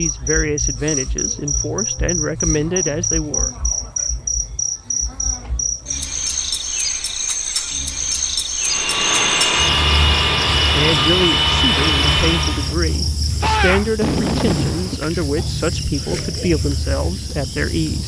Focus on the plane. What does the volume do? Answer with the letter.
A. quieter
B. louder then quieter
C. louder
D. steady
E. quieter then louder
D.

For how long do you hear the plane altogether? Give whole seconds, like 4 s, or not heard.
4 s.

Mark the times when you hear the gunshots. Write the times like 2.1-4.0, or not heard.
13.4-15.0.